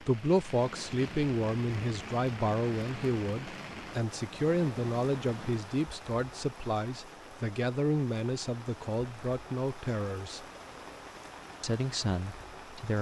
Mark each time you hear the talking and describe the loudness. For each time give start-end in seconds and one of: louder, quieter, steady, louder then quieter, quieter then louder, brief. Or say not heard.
0.0-10.4 steady
11.6-12.9 brief.